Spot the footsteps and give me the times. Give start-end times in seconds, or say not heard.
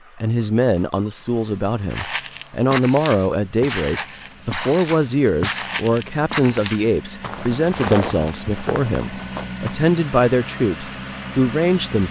1.9-9.8.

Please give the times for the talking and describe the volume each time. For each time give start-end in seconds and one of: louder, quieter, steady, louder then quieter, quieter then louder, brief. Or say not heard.
0.1-12.0 steady.